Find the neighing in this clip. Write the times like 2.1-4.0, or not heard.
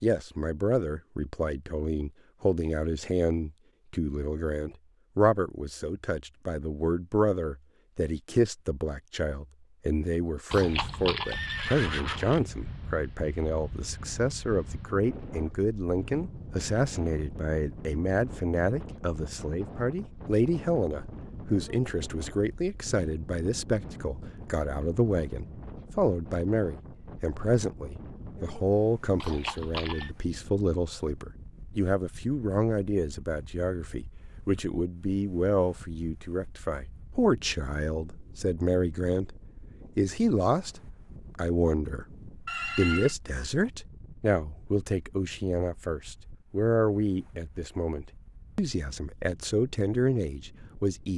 10.5-12.4, 29.2-30.1, 42.5-43.1.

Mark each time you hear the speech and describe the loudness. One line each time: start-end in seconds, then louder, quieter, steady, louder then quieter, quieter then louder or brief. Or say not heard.
0.0-51.1 steady.